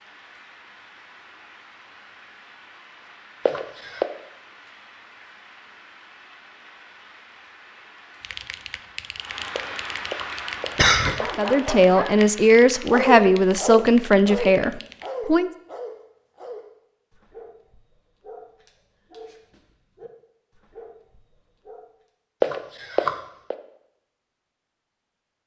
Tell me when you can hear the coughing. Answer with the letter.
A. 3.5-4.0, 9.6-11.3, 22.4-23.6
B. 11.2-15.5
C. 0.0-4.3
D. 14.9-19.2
A.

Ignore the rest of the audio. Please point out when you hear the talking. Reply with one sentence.
The talking can be heard from 11.2 to 15.5 s.